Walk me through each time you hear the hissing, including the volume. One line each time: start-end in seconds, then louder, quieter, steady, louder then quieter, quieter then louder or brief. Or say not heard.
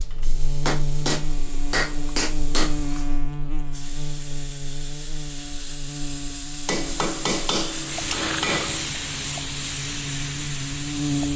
0.0-11.3 louder.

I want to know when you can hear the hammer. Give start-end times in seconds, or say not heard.
0.7-3.0, 6.7-8.9.